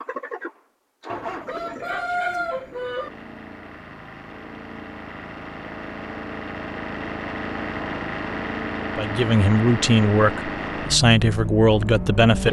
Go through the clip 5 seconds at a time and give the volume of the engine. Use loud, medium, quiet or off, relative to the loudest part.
medium, loud, loud.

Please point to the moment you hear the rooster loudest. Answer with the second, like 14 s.
2 s.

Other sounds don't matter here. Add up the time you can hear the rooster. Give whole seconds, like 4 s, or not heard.
2 s.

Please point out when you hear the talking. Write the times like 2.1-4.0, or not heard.
8.9-12.4.